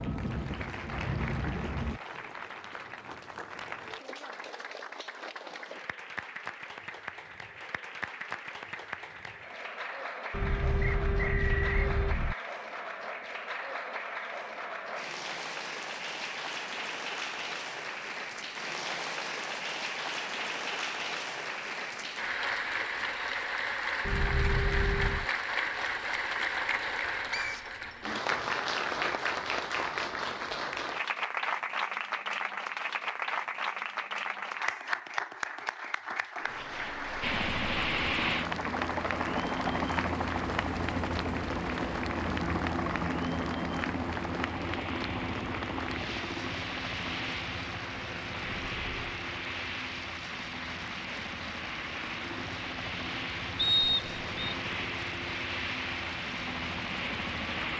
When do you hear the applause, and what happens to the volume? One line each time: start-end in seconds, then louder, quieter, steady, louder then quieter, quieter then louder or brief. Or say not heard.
0.0-57.7 louder then quieter.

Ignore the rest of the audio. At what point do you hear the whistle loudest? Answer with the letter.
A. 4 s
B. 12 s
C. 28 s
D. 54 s
D.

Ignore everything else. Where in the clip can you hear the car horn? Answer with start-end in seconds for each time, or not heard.
10.3-12.3, 24.1-25.3, 48.6-49.1.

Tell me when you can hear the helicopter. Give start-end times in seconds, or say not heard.
0.0-2.0, 37.2-57.7.